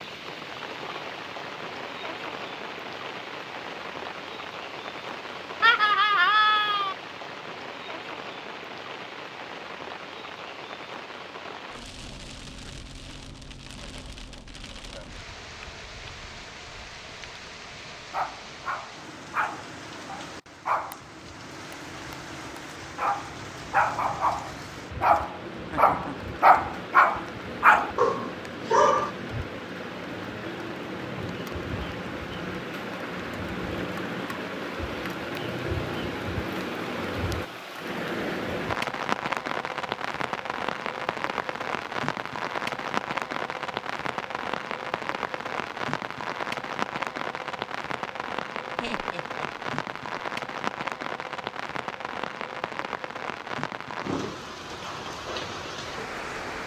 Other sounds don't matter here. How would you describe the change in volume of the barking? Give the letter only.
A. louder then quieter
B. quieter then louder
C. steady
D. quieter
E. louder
E.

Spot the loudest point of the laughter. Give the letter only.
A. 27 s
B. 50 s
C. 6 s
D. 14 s
C.